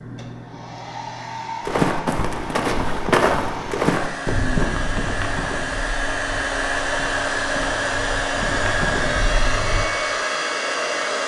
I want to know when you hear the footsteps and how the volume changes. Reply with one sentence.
The footsteps can be heard from 1.6 to 9.8 s, getting quieter then louder.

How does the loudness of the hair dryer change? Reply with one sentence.
The loudness of the hair dryer goes up.